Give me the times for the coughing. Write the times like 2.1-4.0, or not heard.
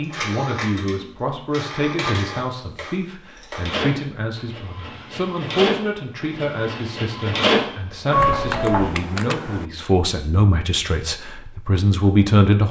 not heard.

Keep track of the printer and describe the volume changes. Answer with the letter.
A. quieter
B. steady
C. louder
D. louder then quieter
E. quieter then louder
C.